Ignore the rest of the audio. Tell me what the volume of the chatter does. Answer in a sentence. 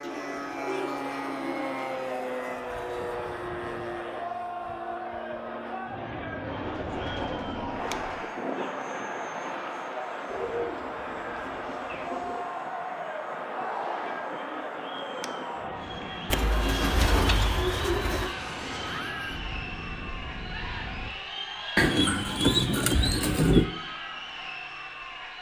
The volume of the chatter stays about the same.